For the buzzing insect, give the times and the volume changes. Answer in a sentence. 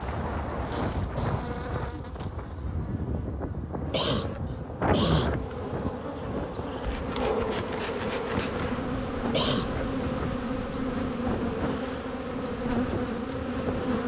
You can hear the buzzing insect from 0.0 to 14.0 s, getting louder.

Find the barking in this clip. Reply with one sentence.
You can hear the barking from 7.2 to 8.3 s.